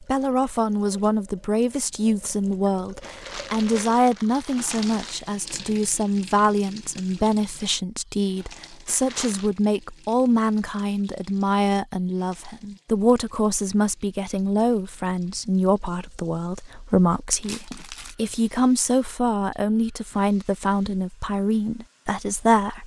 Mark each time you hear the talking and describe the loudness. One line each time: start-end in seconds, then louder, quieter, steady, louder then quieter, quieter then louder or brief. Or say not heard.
0.0-22.8 steady.